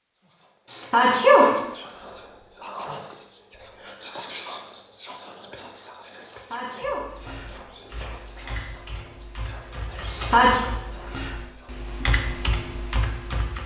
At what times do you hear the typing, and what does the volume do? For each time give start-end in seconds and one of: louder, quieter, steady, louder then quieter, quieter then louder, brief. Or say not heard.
7.0-13.6 louder.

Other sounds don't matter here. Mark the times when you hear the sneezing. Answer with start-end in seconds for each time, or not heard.
0.7-1.6, 6.3-7.0, 10.1-10.7.